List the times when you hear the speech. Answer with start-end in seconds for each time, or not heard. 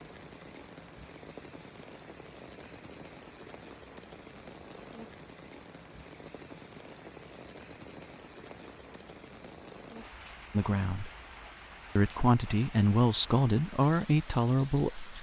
10.5-11.1, 11.9-15.1.